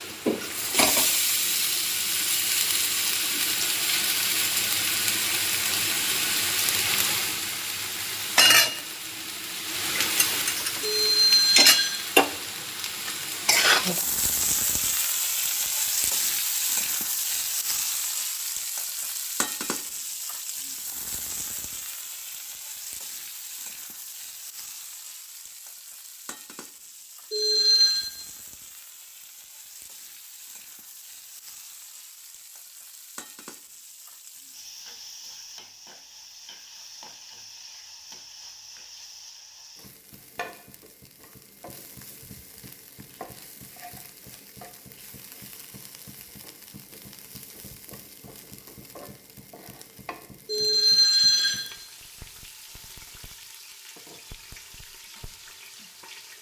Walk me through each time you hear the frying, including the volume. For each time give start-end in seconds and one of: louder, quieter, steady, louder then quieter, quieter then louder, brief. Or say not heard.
0.0-56.3 quieter.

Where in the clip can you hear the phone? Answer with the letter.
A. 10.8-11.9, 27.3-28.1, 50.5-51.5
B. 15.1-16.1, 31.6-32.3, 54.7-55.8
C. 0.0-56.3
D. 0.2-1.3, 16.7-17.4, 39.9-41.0
A.